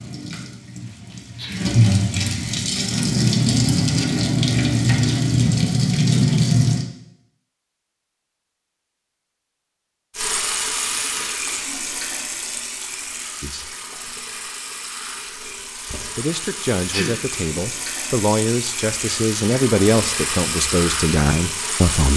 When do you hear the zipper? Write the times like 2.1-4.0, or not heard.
not heard.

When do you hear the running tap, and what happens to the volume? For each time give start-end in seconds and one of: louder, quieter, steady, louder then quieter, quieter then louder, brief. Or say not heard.
0.0-6.8 louder
10.2-22.1 quieter then louder.